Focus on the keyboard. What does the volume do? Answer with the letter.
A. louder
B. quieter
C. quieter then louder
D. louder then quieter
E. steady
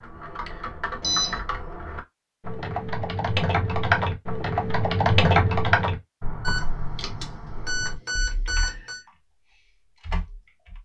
D.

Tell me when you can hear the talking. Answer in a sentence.
The talking can't be heard in this clip.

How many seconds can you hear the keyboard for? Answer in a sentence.
The keyboard can be heard for 11 seconds in total.